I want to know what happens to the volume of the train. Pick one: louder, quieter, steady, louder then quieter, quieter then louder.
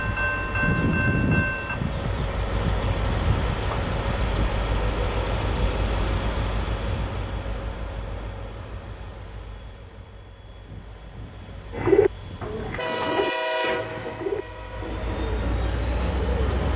quieter then louder.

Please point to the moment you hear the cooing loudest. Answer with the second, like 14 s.
12 s.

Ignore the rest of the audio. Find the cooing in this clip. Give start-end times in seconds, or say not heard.
11.7-16.7.